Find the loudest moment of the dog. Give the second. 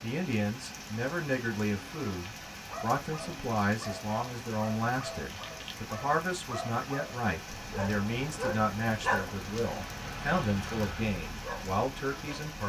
9 s.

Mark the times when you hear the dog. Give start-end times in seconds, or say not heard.
2.4-12.6.